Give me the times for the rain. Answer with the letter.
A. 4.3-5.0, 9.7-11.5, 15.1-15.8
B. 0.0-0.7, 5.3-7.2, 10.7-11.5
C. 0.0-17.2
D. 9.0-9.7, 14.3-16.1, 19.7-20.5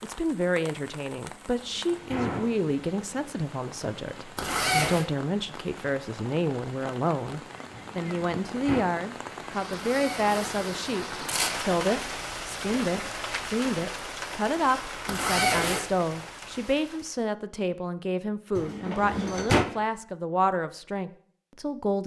C.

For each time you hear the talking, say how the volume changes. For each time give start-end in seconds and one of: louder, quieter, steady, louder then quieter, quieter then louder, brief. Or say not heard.
0.0-22.0 steady.